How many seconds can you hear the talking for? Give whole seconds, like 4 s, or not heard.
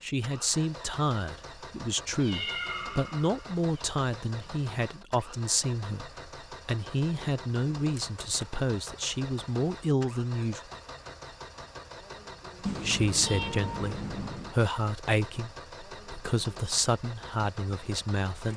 16 s.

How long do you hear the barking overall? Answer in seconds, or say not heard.
not heard.